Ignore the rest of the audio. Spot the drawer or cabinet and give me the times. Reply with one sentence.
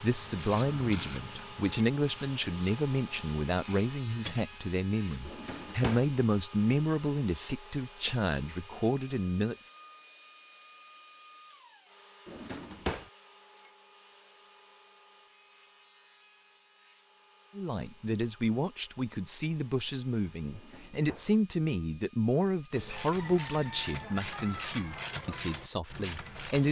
The drawer or cabinet can be heard from 5.2 to 6.0 s, from 12.2 to 13.1 s and from 20.5 to 21.3 s.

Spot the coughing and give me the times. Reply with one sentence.
You can't hear the coughing here.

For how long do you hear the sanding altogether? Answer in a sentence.
The sanding can't be heard in this clip.